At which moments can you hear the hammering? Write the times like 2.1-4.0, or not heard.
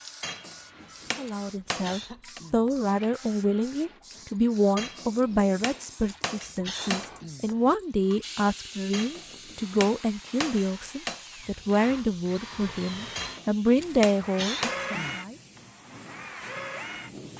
0.2-2.4, 4.8-7.1, 8.9-11.2, 13.2-14.9.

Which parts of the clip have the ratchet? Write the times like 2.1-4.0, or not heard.
not heard.